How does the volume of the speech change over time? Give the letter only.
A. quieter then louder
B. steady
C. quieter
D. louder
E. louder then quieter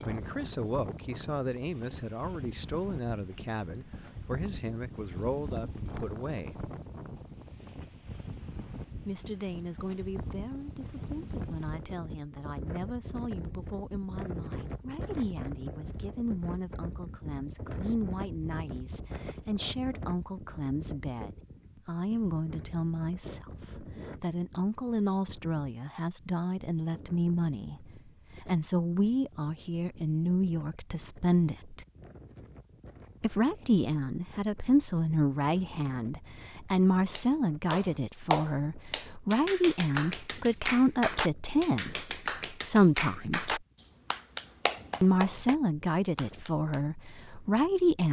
D.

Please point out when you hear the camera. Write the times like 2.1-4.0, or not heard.
not heard.